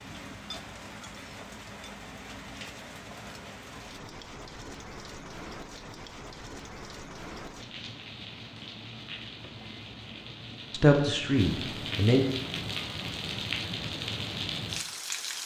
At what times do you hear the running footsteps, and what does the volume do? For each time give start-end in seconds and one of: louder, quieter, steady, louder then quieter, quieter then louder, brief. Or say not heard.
not heard.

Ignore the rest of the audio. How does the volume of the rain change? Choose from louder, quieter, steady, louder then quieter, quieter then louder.
louder.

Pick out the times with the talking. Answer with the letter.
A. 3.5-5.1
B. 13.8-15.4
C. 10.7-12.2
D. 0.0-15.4
C.